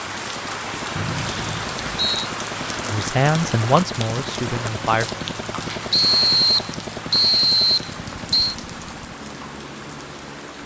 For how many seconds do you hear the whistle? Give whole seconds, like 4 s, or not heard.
4 s.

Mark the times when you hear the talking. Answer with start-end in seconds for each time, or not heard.
2.9-5.1.